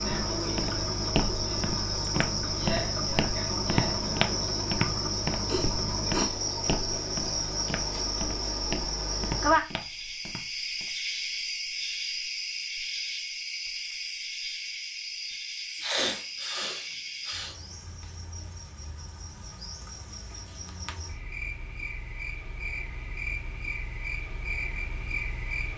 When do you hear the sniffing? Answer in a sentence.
The sniffing can be heard from 5.5 to 6.4 s and from 15.8 to 17.6 s.